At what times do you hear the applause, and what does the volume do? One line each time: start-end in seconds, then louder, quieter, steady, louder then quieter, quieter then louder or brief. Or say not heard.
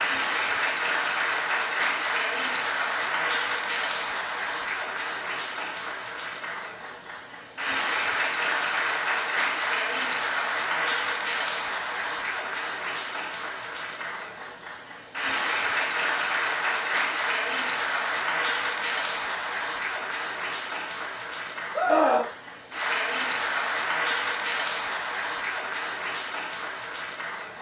0.0-27.5 steady.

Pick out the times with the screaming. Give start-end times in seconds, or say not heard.
21.8-22.3.